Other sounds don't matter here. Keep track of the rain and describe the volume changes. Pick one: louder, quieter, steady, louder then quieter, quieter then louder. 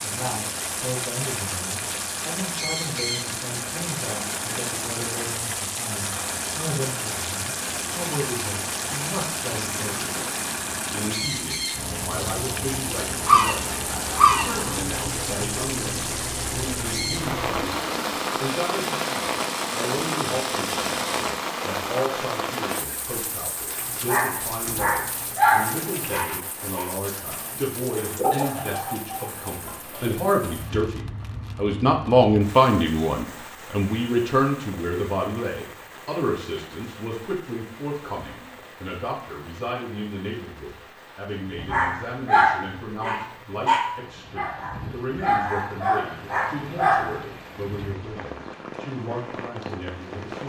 quieter.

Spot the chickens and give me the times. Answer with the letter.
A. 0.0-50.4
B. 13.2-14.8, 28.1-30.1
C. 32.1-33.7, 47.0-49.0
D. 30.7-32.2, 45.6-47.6
B.